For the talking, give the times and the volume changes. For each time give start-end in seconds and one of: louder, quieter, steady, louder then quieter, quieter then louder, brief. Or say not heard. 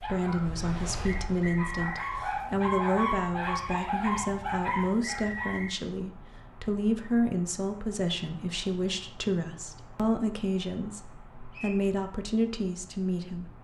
0.0-13.6 steady.